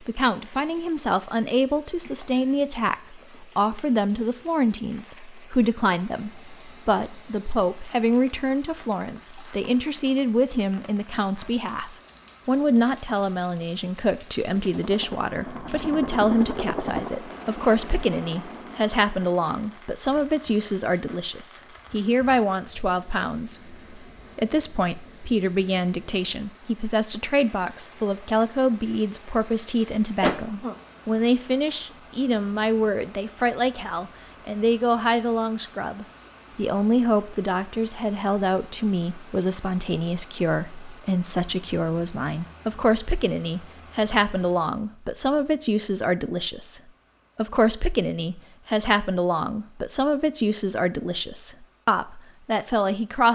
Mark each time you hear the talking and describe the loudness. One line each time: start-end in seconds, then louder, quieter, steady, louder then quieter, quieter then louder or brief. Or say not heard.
0.0-53.3 steady.